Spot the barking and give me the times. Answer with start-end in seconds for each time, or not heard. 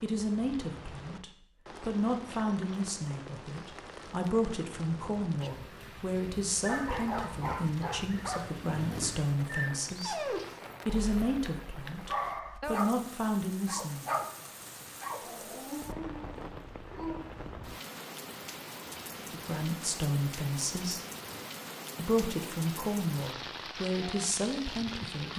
6.5-17.4.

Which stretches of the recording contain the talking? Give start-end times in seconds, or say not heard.
0.0-10.2, 10.8-14.2, 19.3-21.0, 21.9-25.3.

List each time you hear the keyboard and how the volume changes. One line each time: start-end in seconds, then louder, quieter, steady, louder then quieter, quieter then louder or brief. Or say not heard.
not heard.